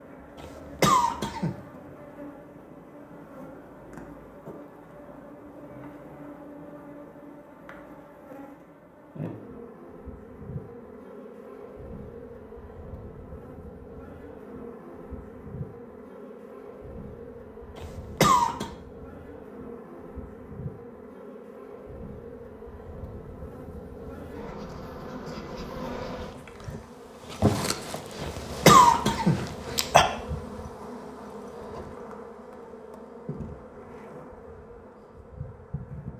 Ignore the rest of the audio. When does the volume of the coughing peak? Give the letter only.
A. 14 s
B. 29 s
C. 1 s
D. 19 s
B.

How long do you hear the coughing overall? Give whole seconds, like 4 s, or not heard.
4 s.